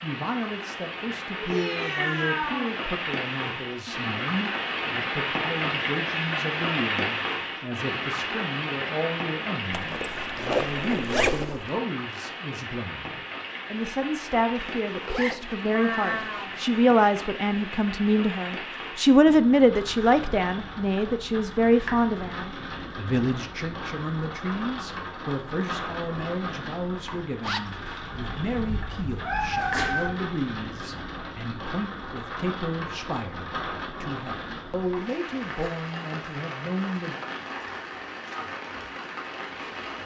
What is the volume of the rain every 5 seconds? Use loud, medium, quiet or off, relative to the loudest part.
loud, loud, medium, medium, medium, medium, medium, medium.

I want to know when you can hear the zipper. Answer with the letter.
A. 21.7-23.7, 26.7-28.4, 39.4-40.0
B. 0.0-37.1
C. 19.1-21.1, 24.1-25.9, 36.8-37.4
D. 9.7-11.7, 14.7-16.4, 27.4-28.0
D.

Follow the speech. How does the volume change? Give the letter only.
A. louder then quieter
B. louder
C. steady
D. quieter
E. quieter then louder
A.